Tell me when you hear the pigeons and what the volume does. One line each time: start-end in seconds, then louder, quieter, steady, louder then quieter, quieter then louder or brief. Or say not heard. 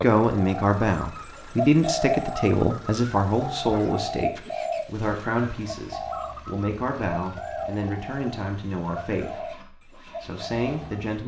0.0-11.1 quieter.